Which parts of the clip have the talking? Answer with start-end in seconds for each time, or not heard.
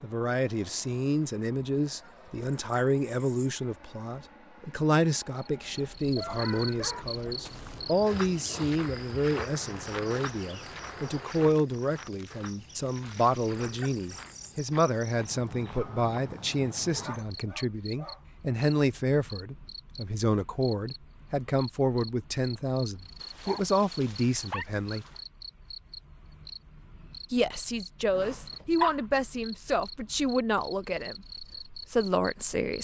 0.0-25.1, 27.3-32.8.